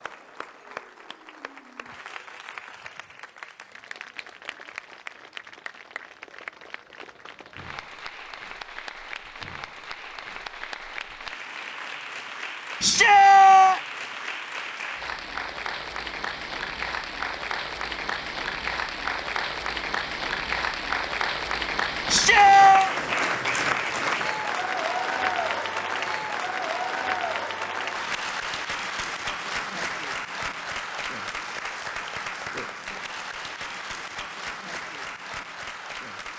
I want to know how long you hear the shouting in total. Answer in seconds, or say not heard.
2 s.